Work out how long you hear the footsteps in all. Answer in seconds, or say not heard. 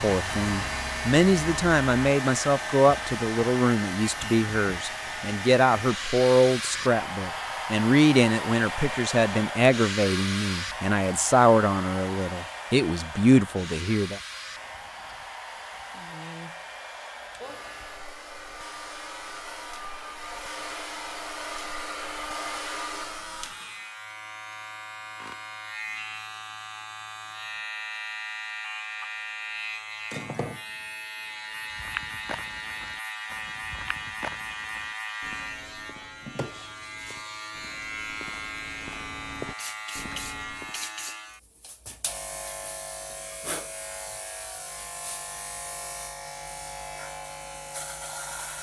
9 s.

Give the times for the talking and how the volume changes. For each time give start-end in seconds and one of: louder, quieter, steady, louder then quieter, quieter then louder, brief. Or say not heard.
0.0-14.2 steady.